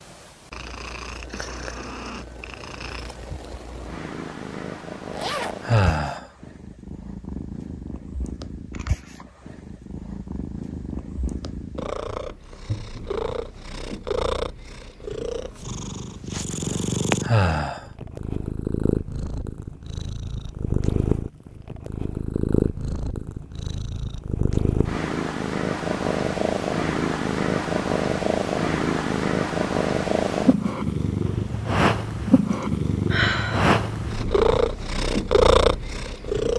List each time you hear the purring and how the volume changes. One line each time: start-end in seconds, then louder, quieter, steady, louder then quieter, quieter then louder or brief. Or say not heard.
0.0-36.5 louder.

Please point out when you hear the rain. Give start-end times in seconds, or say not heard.
not heard.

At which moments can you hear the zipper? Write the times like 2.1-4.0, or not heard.
5.1-5.7.